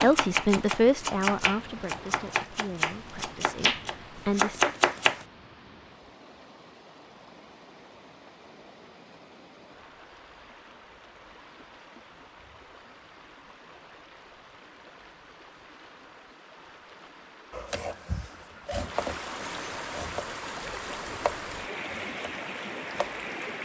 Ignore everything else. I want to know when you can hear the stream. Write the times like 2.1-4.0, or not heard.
0.2-23.5.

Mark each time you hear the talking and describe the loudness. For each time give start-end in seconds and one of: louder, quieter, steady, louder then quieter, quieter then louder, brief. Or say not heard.
0.0-4.7 quieter then louder.